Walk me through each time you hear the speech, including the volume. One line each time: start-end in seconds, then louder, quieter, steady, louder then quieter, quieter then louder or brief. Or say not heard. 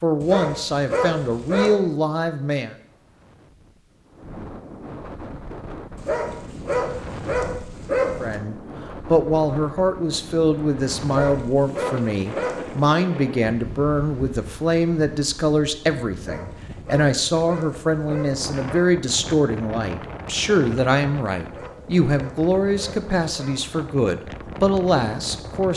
0.0-2.8 brief
8.2-25.7 steady.